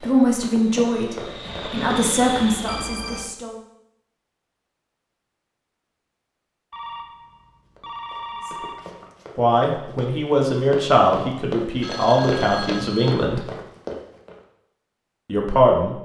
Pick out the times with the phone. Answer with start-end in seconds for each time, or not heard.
2.6-3.4, 6.7-9.1, 11.8-13.2.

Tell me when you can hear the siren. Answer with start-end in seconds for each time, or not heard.
not heard.